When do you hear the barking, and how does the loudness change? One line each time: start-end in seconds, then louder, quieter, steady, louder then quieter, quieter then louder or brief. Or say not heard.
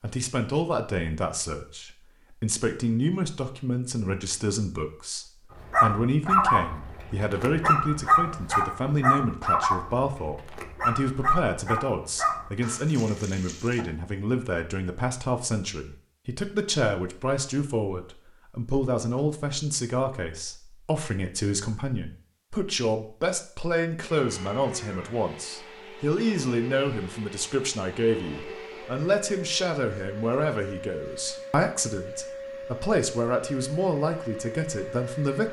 5.5-13.8 quieter.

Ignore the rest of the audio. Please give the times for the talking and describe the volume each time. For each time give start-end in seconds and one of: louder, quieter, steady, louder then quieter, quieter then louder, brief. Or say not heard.
0.0-35.4 steady.